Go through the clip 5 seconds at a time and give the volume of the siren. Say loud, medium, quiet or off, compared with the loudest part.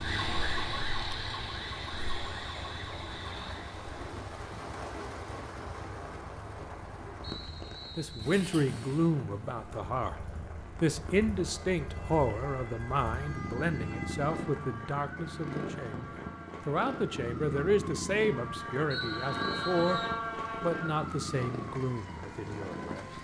loud, off, medium, loud, loud.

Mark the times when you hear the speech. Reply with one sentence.
You can hear the speech from 8.0 to 20.0 s and from 20.6 to 23.1 s.